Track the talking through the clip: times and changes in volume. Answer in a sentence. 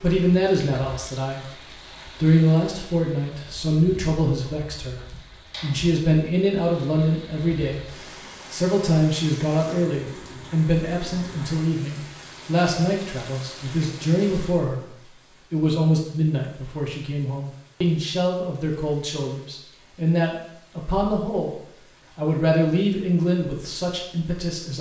The talking can be heard from 0.0 to 24.7 s, at a steady volume.